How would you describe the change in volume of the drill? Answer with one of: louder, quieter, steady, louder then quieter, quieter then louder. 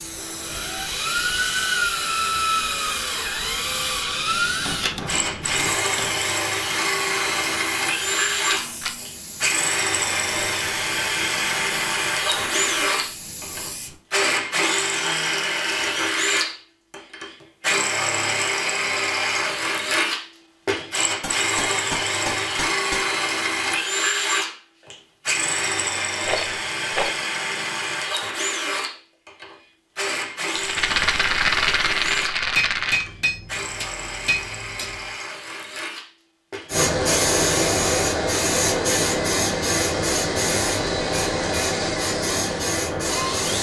quieter.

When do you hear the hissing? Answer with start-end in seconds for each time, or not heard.
0.0-13.9, 36.7-43.5.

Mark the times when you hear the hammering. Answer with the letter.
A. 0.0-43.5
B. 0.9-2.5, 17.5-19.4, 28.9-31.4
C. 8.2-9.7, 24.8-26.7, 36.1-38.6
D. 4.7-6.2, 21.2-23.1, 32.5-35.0
D.